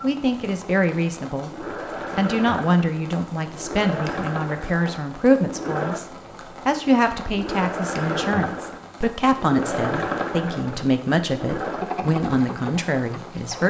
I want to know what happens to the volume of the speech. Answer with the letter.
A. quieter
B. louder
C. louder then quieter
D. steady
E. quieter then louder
D.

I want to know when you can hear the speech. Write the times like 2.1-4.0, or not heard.
0.0-13.6.